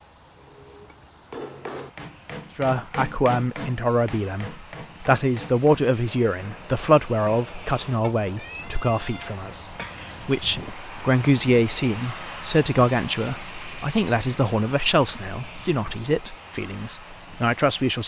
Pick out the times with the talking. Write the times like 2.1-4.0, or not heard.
2.5-18.0.